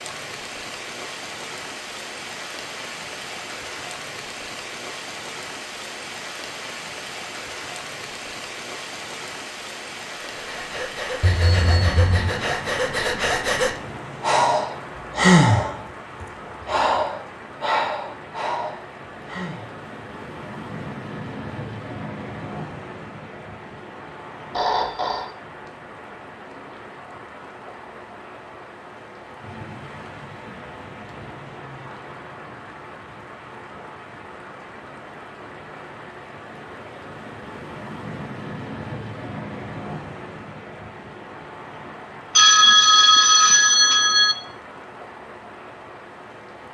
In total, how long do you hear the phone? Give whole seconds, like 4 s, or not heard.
4 s.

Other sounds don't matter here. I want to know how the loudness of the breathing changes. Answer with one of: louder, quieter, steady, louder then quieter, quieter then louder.
louder then quieter.